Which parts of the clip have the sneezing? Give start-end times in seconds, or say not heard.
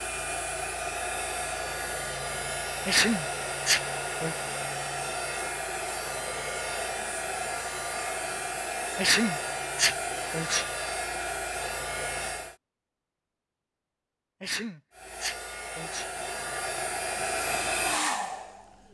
2.9-4.3, 8.9-10.7, 14.4-16.1.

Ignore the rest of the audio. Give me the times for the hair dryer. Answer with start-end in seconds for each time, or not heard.
0.0-12.6, 14.9-18.8.